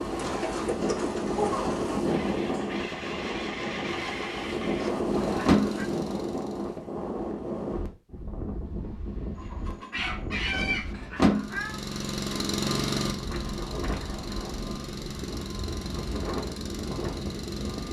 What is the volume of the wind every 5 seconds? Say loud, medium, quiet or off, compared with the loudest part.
loud, loud, medium, medium.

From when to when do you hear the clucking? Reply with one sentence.
The clucking can be heard from 0.1 to 2.1 s and from 9.3 to 10.8 s.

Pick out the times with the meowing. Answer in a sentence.
You can hear the meowing from 4.8 to 5.8 s and from 10.5 to 11.8 s.